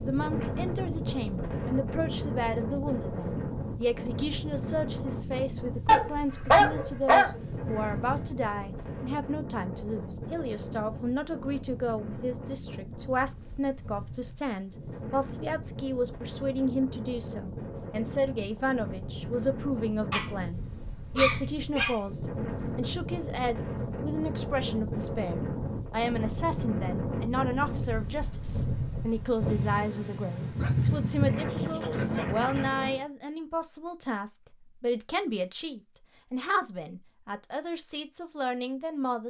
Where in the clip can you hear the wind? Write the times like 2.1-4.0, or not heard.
0.0-33.0.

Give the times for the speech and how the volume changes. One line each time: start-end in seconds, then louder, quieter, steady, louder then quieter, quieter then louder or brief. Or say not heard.
0.0-39.2 steady.